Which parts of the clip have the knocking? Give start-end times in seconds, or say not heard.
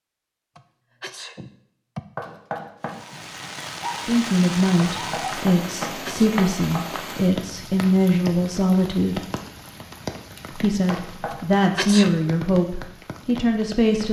2.1-3.0, 4.8-6.8, 10.9-11.4.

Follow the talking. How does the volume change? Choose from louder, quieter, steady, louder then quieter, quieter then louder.
steady.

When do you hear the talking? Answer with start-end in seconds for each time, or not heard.
4.0-9.2, 10.6-14.0.